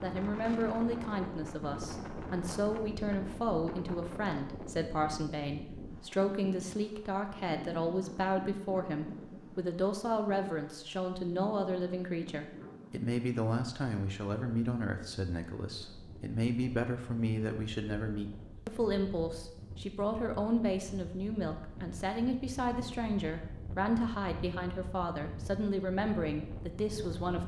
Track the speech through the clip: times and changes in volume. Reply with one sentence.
You can hear the speech from 0.0 to 27.4 s, at a steady volume.